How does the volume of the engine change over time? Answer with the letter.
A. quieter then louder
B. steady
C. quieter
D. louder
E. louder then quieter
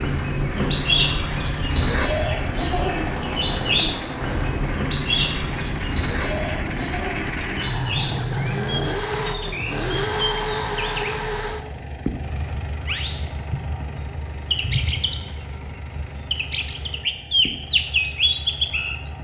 E.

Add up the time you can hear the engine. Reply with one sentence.
You can hear the engine for 19 seconds altogether.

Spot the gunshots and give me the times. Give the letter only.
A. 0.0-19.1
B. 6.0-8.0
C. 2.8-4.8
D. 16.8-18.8
C.